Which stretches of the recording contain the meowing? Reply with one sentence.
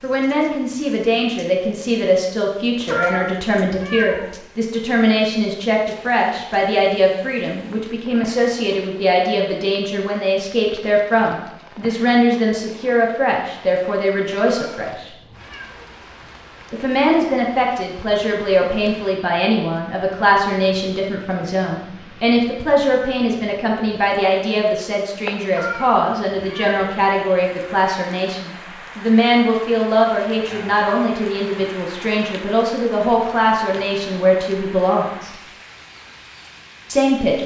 You can hear the meowing from 2.9 to 4.3 s, from 14.5 to 15.9 s and from 25.5 to 26.9 s.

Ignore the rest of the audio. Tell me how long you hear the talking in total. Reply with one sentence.
The talking can be heard for 34 seconds in total.